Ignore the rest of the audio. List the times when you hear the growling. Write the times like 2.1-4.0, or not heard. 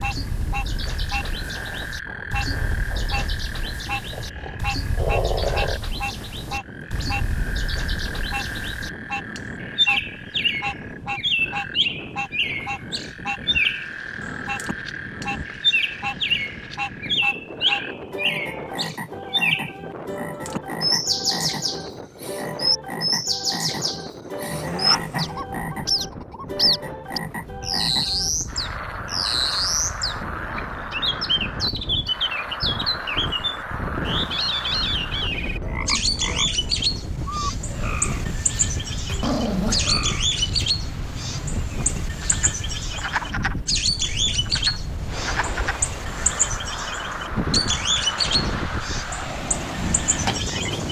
4.1-5.8, 24.5-25.4, 39.0-39.9.